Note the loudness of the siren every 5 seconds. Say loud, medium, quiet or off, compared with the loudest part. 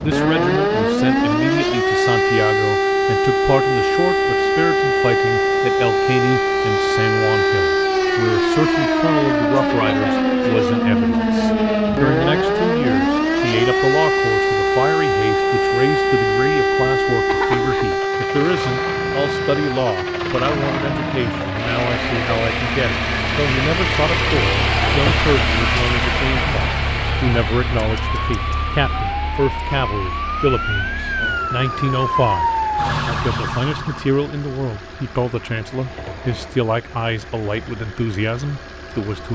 loud, loud, loud, loud, medium, medium, medium, off.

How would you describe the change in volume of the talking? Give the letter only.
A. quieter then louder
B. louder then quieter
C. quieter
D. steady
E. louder
D.